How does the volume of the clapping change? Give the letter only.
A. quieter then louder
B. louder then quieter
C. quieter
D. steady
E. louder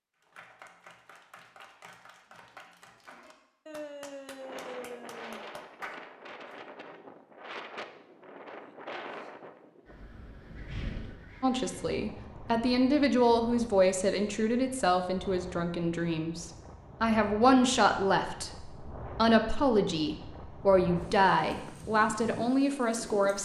E.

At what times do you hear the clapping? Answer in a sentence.
You can hear the clapping from 0.1 to 6.5 s.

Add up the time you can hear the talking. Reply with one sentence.
You can hear the talking for 12 seconds altogether.